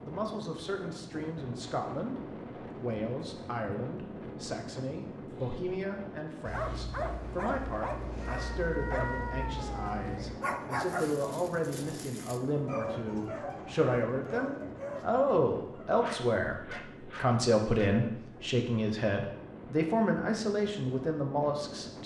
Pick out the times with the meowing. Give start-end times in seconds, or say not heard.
8.2-10.4.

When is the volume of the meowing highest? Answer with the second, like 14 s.
9 s.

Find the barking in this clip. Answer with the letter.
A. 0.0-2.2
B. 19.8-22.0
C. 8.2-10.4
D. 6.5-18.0
D.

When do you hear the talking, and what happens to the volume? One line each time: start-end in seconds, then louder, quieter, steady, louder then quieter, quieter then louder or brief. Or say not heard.
0.1-22.0 louder.